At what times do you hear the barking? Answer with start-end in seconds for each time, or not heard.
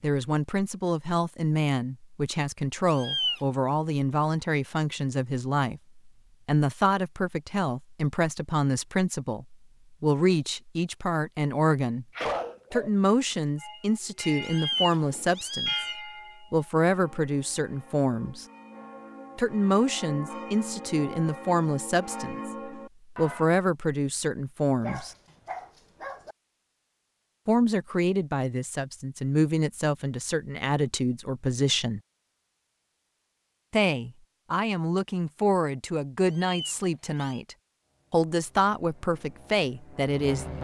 12.2-13.3, 24.8-26.4.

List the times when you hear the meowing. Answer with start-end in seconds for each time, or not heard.
2.9-3.4, 14.4-15.9, 36.2-37.4.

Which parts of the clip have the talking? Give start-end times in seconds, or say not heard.
0.0-12.1, 12.7-18.4, 19.4-25.1, 27.4-32.0, 33.7-40.5.